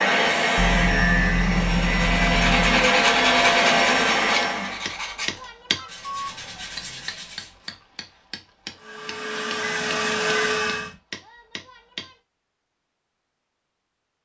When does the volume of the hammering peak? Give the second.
6 s.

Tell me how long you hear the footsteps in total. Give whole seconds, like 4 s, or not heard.
not heard.